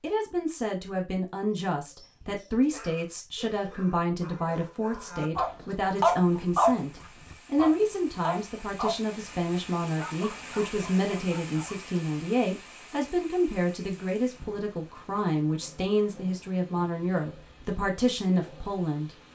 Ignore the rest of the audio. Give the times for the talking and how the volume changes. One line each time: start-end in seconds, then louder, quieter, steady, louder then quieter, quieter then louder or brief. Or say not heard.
0.0-19.3 steady.